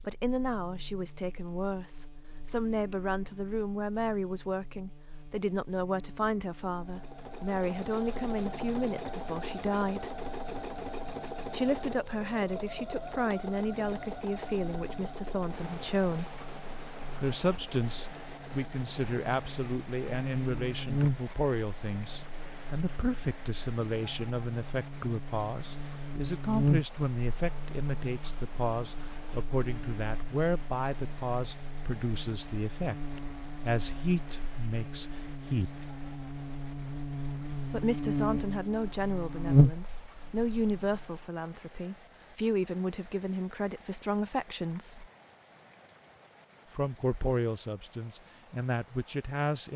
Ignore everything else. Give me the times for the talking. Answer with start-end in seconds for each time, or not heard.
0.0-10.2, 11.5-16.4, 17.2-35.9, 37.7-45.0, 46.7-49.7.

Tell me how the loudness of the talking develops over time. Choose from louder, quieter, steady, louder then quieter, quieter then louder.
steady.